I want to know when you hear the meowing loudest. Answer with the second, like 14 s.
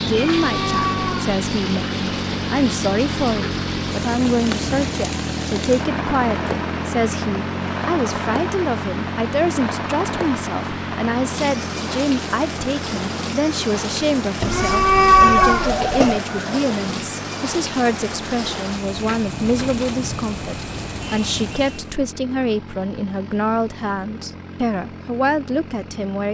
15 s.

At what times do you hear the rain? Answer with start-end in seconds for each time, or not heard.
0.0-21.9.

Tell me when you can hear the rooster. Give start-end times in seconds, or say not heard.
15.2-16.8.